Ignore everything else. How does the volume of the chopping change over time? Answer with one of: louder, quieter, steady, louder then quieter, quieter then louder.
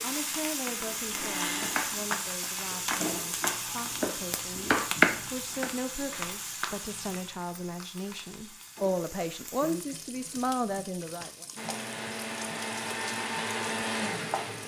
quieter then louder.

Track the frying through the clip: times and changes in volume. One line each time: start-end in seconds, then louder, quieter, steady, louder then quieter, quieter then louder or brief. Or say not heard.
0.0-14.6 quieter.